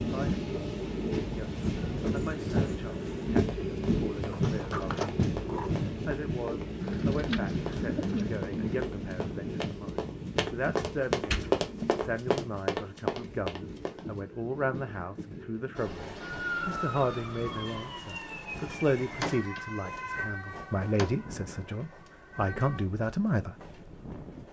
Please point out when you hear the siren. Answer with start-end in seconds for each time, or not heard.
15.8-22.9.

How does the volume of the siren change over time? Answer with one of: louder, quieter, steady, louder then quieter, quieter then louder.
quieter.